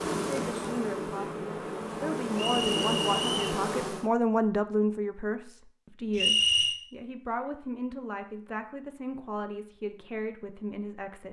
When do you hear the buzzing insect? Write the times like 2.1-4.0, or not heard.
0.0-4.1.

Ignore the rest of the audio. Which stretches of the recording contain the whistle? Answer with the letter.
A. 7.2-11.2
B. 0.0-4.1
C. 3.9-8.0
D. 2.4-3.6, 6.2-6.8
D.